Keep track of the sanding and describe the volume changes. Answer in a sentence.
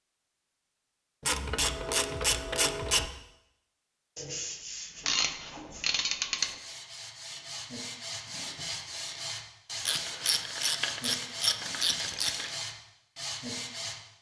The volume of the sanding goes up.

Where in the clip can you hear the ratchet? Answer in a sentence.
The ratchet can be heard from 1.2 to 3.1 s, from 5.0 to 6.5 s and from 9.8 to 12.5 s.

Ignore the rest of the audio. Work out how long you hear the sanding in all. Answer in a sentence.
You can hear the sanding for 10 seconds altogether.